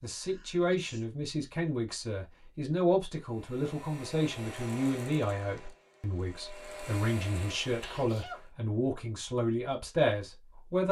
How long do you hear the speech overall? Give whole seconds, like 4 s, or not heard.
11 s.